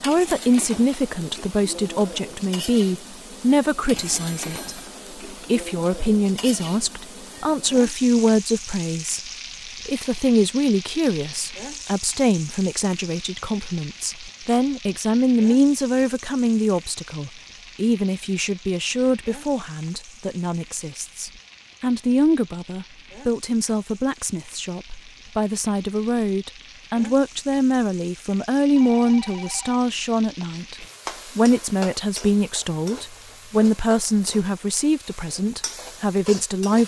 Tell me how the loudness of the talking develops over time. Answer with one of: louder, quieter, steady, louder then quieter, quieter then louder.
steady.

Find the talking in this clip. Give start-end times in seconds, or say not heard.
0.0-36.8.